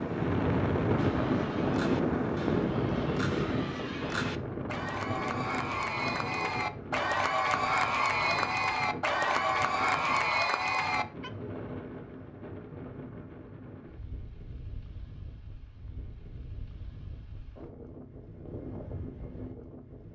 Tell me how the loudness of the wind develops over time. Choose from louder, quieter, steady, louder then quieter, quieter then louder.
quieter.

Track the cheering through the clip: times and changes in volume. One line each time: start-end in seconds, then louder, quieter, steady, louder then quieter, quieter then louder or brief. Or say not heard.
0.9-11.3 louder.